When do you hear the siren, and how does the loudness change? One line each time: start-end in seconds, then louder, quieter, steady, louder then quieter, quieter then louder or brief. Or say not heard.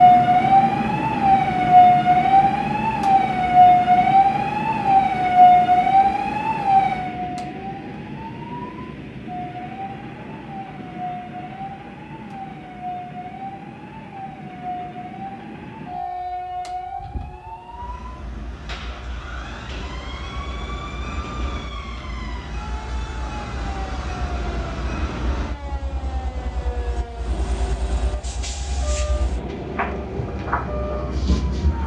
0.0-31.8 quieter.